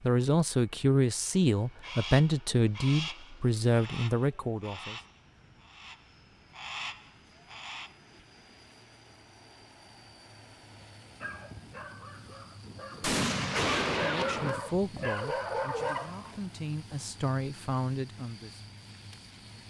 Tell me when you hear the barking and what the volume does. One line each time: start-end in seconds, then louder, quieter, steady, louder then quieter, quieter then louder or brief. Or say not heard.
11.2-16.4 louder.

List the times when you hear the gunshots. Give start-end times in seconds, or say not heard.
13.0-14.6.